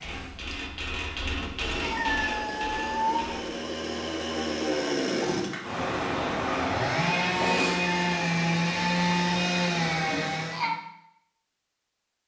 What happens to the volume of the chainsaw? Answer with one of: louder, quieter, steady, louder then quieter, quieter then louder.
louder.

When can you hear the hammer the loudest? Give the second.
2 s.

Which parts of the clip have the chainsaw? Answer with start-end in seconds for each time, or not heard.
0.0-10.7.